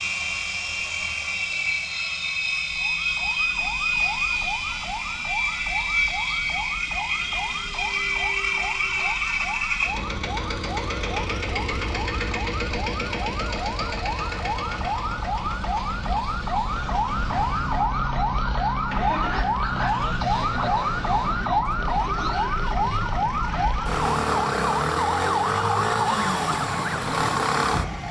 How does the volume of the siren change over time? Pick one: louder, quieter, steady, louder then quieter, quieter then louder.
louder.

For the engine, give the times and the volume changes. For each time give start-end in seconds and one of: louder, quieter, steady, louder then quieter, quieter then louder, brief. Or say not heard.
0.0-28.0 quieter.